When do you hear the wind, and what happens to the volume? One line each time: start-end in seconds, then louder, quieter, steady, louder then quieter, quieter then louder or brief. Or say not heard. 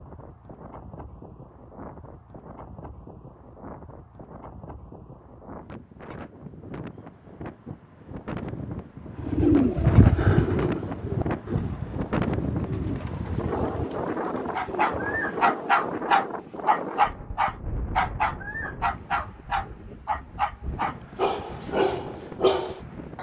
0.0-23.1 louder then quieter.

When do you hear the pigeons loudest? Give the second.
10 s.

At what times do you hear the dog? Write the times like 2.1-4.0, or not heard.
14.6-23.1.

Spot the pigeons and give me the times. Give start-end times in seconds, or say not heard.
9.2-15.3.